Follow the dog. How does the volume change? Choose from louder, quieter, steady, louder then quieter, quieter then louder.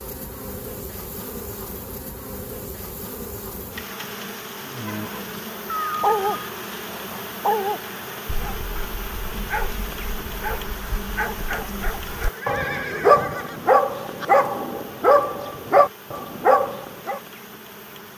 quieter then louder.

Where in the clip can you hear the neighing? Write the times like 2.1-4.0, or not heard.
5.7-6.5, 12.2-14.2.